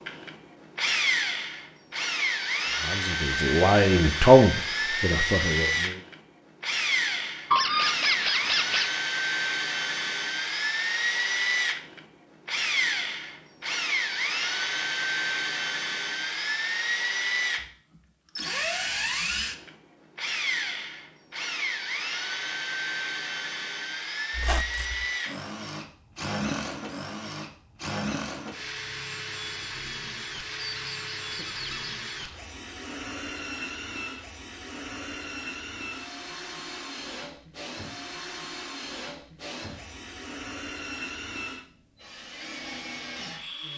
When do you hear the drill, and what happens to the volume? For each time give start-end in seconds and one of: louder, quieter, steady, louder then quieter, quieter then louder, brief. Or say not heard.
0.0-43.7 quieter.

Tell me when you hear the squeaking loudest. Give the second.
8 s.